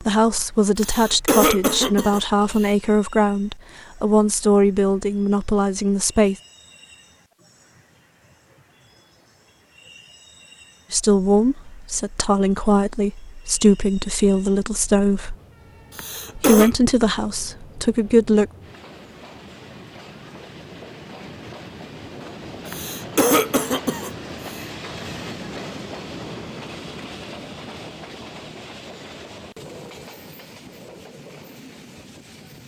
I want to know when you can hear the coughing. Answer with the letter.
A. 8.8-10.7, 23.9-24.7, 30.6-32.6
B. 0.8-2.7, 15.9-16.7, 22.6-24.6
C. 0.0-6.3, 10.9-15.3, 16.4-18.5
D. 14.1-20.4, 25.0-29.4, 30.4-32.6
B.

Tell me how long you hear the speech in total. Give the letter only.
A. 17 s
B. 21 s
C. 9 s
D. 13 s
D.